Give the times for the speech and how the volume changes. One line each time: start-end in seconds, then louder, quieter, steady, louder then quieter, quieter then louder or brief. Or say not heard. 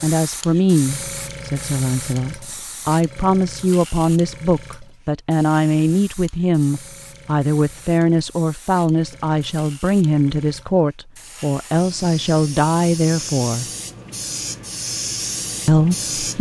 0.0-13.7 steady
15.7-16.3 brief.